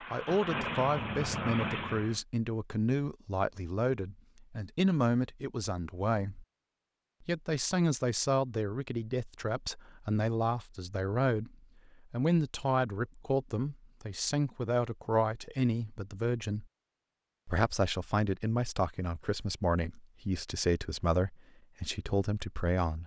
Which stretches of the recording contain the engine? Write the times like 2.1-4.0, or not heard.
0.0-2.2.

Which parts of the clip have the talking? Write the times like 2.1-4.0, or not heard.
0.1-6.5, 7.2-16.6, 17.4-23.0.